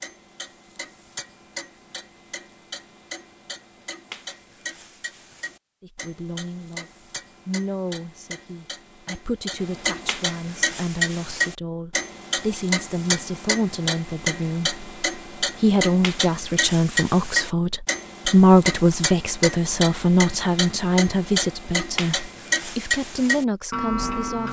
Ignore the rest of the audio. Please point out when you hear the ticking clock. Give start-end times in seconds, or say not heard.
0.0-24.4.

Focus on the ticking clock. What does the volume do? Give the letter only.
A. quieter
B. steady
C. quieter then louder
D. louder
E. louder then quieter
D.